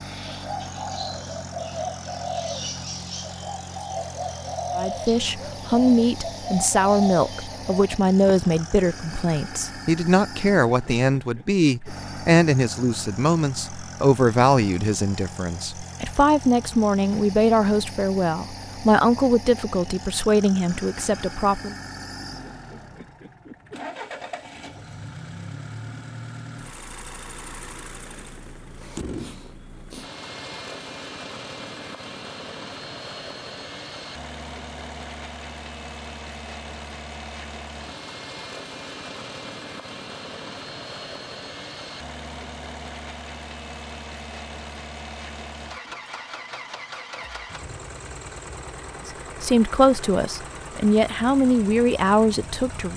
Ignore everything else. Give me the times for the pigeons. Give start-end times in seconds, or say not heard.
0.0-8.7.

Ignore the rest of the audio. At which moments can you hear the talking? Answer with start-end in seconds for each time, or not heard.
4.8-21.8, 49.0-52.9.